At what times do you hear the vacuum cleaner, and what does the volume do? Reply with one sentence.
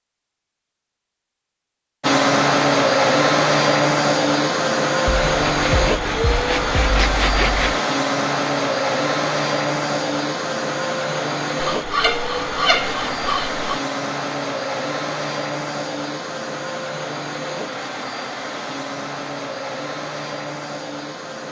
The vacuum cleaner can be heard from 2.0 to 21.4 s, getting quieter.